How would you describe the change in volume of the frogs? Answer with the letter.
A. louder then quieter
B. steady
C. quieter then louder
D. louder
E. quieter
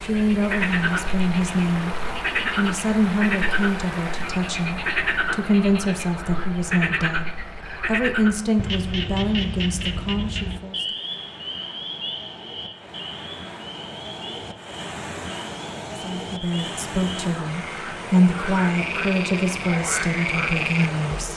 C.